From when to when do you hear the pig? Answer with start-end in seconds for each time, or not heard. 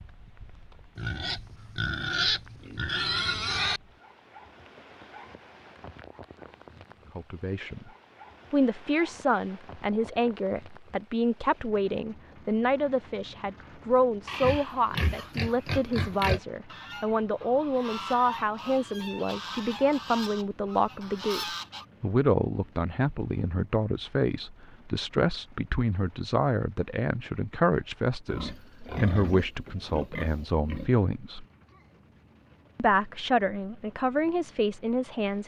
0.9-3.8, 14.2-16.4, 28.2-30.9.